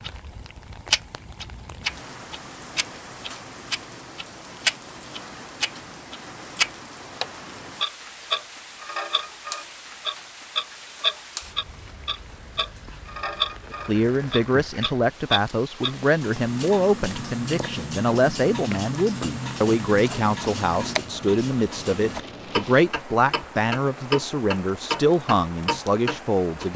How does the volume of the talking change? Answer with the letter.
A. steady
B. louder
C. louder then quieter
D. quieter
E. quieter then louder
A.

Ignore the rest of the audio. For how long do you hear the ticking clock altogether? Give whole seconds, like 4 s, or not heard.
27 s.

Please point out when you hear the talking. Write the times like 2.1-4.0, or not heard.
13.7-26.7.